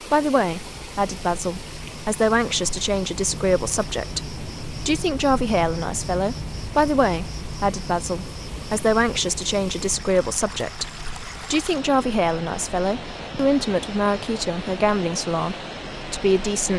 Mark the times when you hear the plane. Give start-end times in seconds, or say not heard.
not heard.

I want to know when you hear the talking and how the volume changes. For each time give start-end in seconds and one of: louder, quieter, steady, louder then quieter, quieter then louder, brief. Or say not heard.
0.1-16.7 steady.